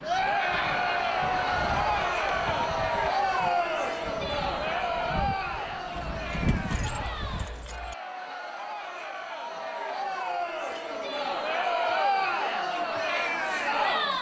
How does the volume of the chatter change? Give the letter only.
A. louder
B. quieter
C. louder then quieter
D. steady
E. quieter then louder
E.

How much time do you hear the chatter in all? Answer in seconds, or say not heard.
14 s.